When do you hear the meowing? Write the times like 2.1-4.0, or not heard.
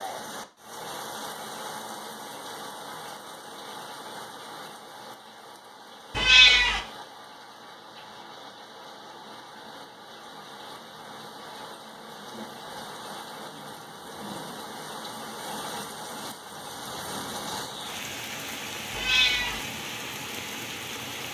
6.1-6.8, 18.9-19.6.